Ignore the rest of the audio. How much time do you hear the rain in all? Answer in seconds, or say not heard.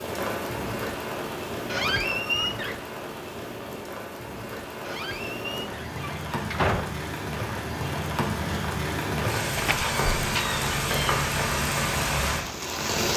13 s.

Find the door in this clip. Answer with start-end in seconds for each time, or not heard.
1.6-2.8, 4.8-6.9, 9.6-11.2.